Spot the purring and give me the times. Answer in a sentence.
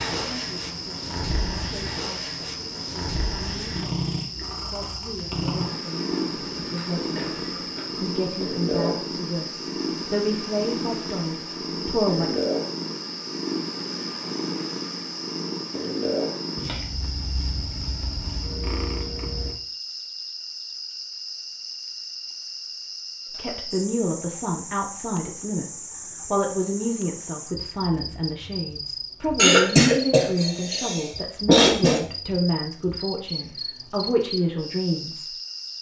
You can hear the purring from 0.0 to 19.6 s.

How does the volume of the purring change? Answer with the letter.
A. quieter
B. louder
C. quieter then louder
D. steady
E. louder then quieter
D.